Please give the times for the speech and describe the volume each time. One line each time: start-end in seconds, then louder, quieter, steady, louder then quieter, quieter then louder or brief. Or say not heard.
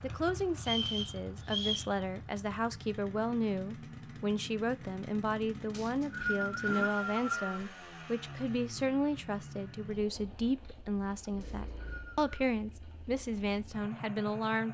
0.0-14.7 steady.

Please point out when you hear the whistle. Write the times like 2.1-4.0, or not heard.
0.6-1.9, 5.7-7.5, 11.4-12.2.